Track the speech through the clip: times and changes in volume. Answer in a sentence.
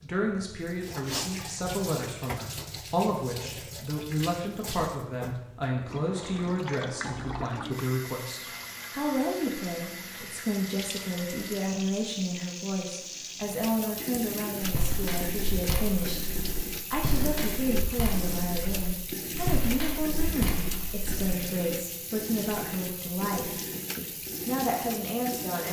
You can hear the speech from 0.0 to 25.6 s, at a steady volume.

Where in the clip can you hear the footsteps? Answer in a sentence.
The footsteps can be heard from 14.6 to 21.2 s.